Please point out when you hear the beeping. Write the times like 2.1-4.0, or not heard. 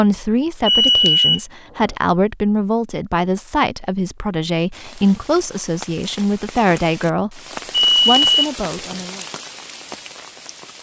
0.7-1.9, 7.7-8.9.